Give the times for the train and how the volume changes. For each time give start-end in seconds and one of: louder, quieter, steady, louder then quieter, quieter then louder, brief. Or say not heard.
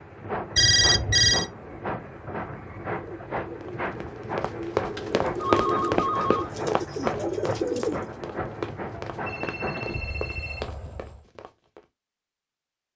0.0-11.2 steady.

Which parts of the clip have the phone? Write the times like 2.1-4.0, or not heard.
0.6-1.4, 5.0-6.5, 9.2-10.7.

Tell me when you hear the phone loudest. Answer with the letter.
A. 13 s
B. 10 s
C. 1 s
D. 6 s
C.